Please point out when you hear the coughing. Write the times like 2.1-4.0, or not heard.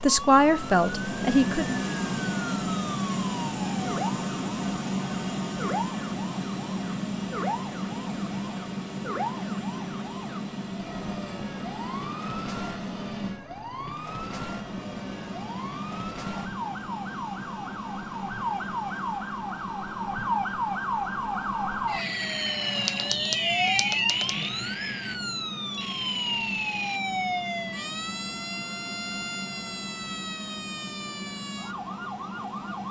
not heard.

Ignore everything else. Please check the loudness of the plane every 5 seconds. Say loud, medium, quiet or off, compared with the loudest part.
loud, loud, medium, medium, medium, medium, medium.